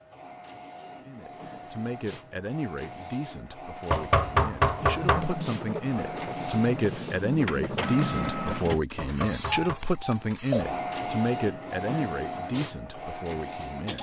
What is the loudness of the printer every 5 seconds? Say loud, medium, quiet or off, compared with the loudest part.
medium, loud, loud.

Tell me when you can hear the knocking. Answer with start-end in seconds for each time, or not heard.
3.9-5.2, 8.9-9.8.